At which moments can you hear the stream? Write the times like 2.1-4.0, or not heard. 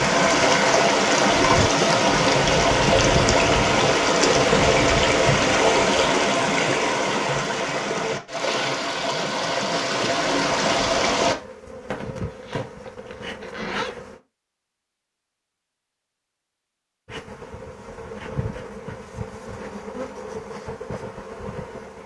0.0-11.3.